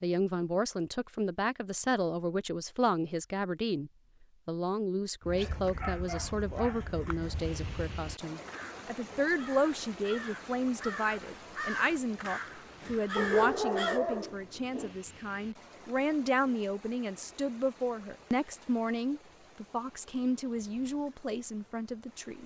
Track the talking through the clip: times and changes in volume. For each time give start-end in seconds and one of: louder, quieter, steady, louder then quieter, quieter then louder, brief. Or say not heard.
0.0-22.4 steady.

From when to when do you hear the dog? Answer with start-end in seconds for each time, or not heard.
5.3-7.2, 13.2-14.9.